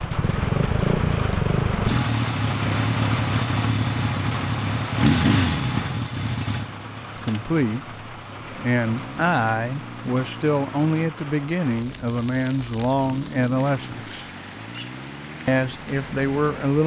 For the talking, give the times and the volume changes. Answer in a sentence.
The talking can be heard from 7.2 to 14.2 s, at a steady volume; and briefly from 15.4 to 16.8 s.